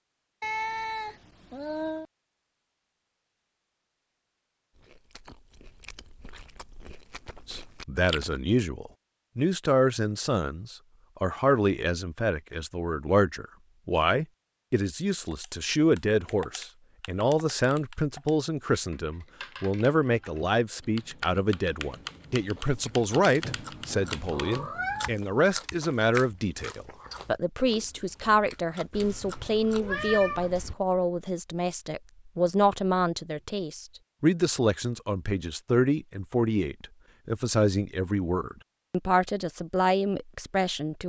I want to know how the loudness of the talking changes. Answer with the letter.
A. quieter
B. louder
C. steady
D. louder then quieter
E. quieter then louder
C.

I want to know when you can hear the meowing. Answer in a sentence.
The meowing can be heard from 0.4 to 2.0 s, from 23.4 to 25.1 s and from 28.9 to 30.8 s.